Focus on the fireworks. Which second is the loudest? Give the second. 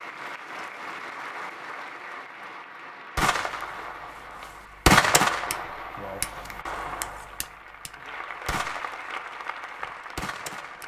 5 s.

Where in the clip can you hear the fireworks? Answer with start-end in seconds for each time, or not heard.
3.1-10.8.